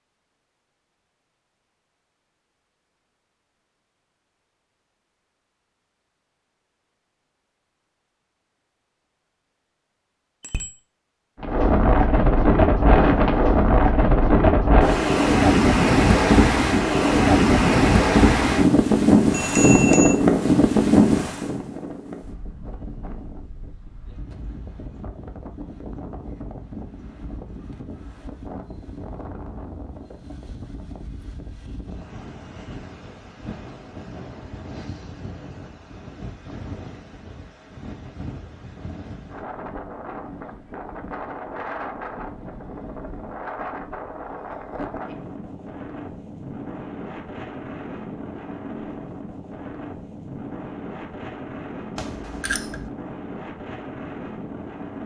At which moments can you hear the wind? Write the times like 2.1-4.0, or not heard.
11.4-55.0.